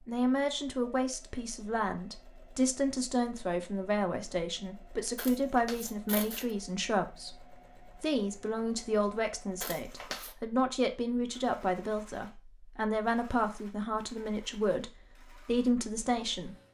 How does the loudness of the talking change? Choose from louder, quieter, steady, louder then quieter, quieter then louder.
steady.